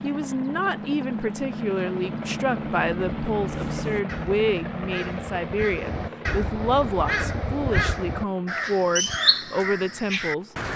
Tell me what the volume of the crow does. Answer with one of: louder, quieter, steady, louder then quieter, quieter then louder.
louder.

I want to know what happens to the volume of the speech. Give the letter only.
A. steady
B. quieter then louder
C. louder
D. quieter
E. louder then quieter
A.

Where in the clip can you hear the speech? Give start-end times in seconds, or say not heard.
0.0-10.5.